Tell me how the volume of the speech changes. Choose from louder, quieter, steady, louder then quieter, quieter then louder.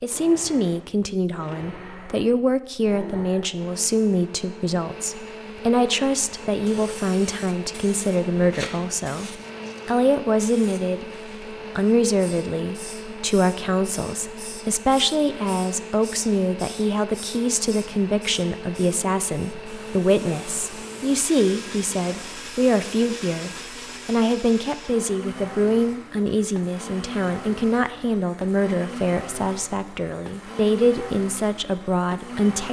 steady.